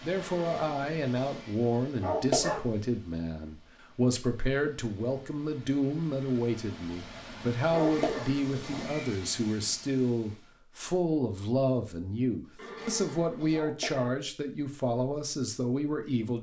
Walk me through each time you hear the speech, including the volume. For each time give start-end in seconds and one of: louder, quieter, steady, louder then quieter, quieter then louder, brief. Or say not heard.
0.0-16.3 steady.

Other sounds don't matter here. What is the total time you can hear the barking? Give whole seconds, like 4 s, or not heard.
2 s.